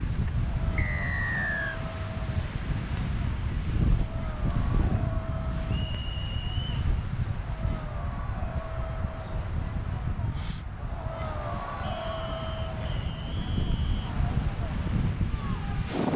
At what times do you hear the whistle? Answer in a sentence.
You can hear the whistle from 0.8 to 1.8 s, from 5.7 to 6.9 s and from 11.8 to 14.2 s.